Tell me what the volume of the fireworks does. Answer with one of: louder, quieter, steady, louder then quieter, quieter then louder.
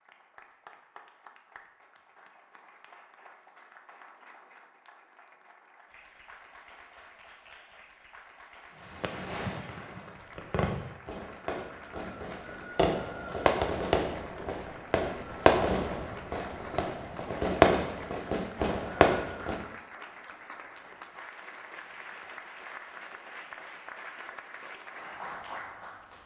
louder.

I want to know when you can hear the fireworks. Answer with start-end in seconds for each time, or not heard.
8.9-19.6.